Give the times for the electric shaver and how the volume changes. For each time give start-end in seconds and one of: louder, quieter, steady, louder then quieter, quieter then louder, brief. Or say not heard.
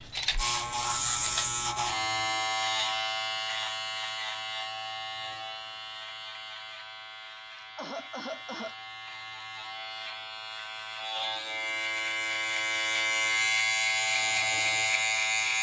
0.0-15.5 quieter then louder.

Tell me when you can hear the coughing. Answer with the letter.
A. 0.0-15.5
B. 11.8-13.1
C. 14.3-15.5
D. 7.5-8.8
D.